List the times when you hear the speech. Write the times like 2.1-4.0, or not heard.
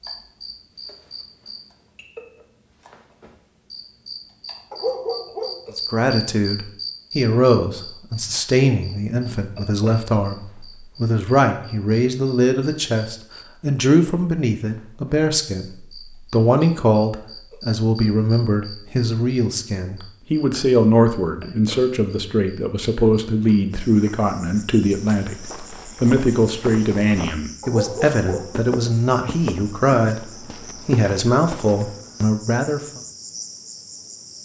5.8-33.0.